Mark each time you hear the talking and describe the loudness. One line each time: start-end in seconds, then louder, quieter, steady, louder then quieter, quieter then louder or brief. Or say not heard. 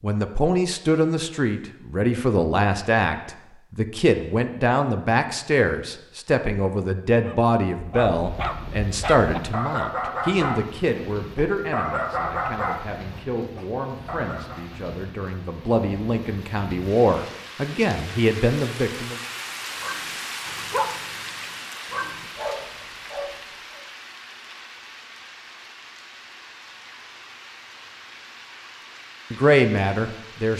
0.0-19.1 quieter then louder
29.3-30.5 brief.